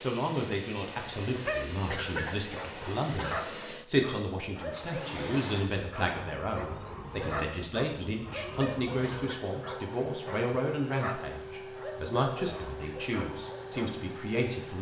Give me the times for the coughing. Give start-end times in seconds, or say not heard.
1.4-3.4, 8.4-9.4.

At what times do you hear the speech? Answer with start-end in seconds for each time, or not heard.
0.0-14.7.